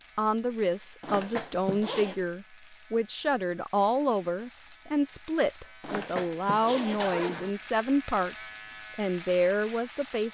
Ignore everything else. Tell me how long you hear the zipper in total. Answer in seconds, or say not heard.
3 s.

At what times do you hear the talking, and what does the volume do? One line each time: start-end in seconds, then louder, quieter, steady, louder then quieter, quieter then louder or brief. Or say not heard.
0.1-10.3 steady.